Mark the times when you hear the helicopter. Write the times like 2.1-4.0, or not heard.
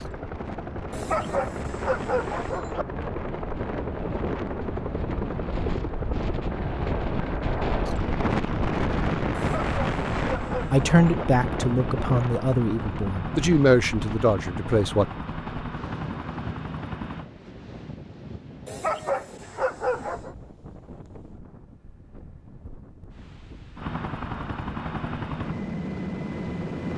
0.0-17.3, 23.8-26.9.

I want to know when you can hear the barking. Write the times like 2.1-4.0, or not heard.
0.9-2.9, 9.3-11.2, 18.6-20.4.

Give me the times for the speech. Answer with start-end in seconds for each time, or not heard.
10.7-15.1.